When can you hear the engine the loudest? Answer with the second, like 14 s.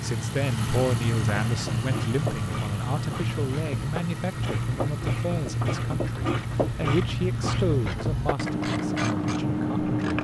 1 s.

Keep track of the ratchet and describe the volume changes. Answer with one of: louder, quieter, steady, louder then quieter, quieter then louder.
louder.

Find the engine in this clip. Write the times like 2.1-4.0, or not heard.
0.0-10.2.